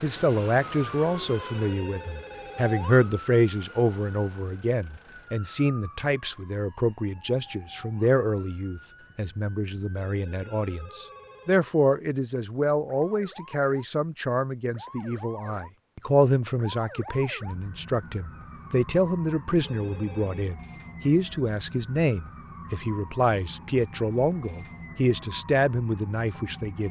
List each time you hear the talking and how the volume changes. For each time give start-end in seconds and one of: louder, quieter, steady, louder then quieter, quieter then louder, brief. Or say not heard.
0.0-26.8 steady.